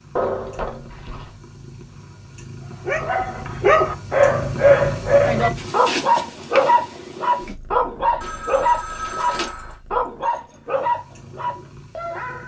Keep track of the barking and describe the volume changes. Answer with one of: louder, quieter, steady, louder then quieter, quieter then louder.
quieter.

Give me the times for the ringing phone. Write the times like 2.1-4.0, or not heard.
0.1-1.3, 8.2-9.8.